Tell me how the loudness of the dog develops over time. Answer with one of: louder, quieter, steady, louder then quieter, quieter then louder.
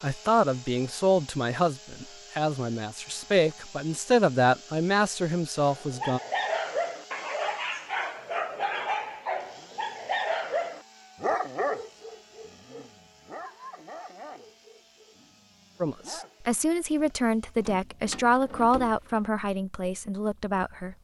quieter.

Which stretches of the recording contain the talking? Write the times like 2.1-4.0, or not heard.
0.0-6.2, 15.8-20.9.